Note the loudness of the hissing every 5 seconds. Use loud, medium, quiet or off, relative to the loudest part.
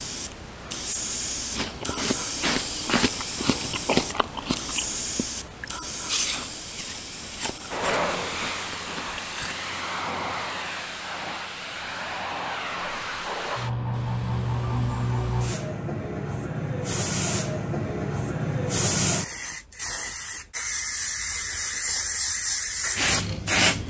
medium, medium, loud, loud, loud.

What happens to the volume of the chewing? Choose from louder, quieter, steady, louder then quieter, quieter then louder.
quieter.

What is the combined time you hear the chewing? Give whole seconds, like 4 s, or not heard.
8 s.